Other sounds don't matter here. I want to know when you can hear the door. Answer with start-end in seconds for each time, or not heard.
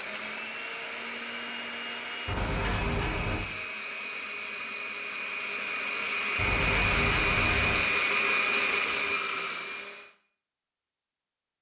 2.2-3.4, 6.3-7.8.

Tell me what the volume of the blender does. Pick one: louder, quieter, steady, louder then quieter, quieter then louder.
louder.